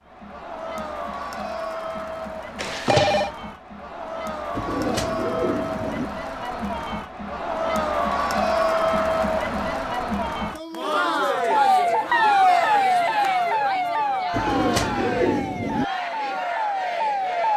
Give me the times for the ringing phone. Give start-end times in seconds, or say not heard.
2.5-3.3.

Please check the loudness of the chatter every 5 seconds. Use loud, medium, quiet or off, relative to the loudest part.
medium, loud, loud, medium.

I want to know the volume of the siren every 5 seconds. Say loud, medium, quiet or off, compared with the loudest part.
off, off, loud, medium.